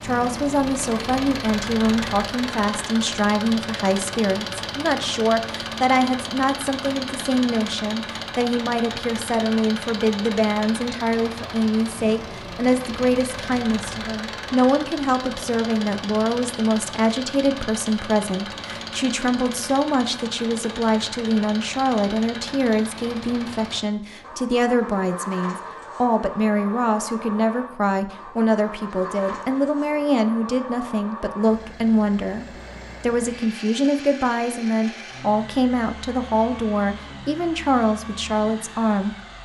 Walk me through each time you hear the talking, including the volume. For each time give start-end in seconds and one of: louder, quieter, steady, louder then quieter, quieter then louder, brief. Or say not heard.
0.0-39.1 steady.